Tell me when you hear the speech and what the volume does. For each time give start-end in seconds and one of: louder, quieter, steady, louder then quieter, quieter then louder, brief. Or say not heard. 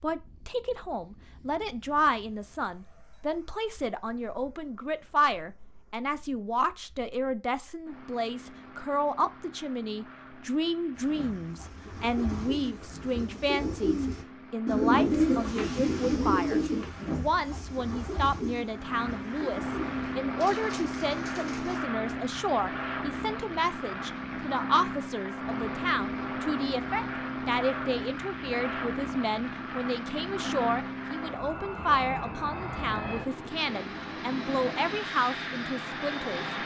0.0-36.6 steady.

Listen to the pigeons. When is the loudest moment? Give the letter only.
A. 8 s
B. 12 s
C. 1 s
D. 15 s
D.